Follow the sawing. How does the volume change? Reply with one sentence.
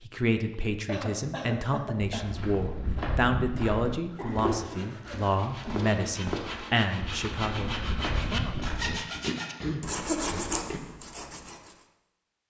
The loudness of the sawing goes up.